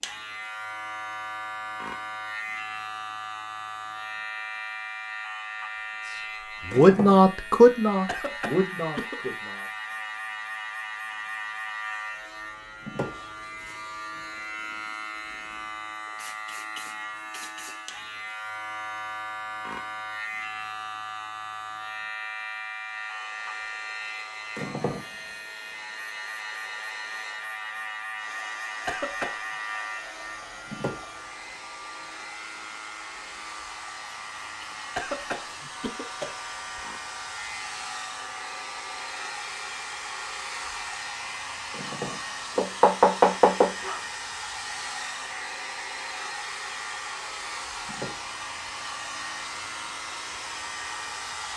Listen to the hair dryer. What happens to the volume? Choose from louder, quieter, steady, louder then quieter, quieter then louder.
louder.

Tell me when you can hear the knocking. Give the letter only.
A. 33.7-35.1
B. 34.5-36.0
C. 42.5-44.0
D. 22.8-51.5
C.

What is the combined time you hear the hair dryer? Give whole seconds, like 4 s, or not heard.
29 s.